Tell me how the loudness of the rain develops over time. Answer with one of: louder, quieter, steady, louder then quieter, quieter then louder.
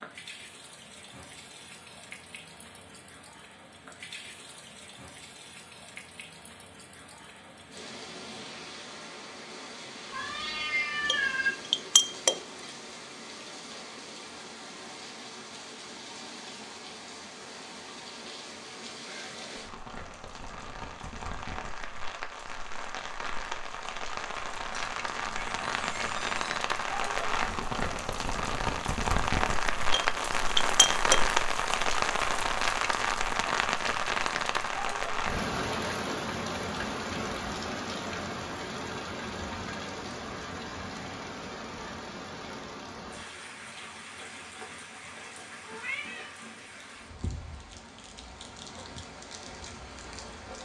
louder then quieter.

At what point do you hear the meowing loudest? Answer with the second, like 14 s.
11 s.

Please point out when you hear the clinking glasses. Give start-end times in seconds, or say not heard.
11.1-12.4, 29.9-31.2.